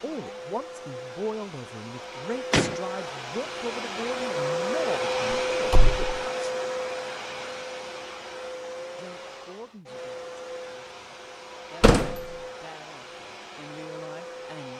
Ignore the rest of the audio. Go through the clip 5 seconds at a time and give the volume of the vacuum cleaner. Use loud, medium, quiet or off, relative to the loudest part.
loud, loud, medium.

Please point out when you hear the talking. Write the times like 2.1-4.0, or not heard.
0.0-6.2, 8.9-14.7.